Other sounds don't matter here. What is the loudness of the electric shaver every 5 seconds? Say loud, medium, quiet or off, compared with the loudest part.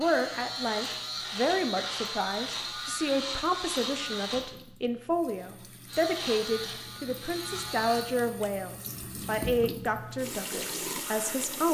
loud, loud, off.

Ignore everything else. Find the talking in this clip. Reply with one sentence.
The talking can be heard from 0.0 to 11.6 s.